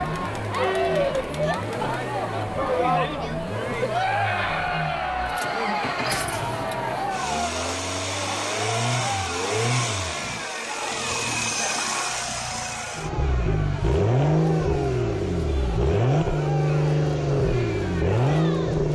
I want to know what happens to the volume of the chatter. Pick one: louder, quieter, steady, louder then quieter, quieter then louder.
quieter.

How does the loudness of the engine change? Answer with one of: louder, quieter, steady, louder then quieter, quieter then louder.
louder.